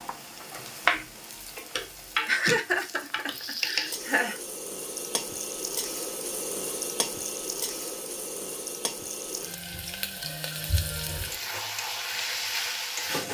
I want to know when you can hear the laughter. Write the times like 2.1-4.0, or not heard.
2.2-4.3.